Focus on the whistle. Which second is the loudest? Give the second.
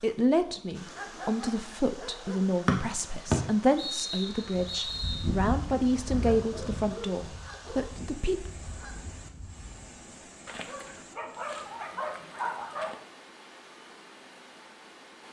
3 s.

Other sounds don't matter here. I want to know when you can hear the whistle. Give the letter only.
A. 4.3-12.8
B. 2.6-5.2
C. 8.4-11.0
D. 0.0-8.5
B.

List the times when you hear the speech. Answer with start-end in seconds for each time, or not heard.
0.0-8.5.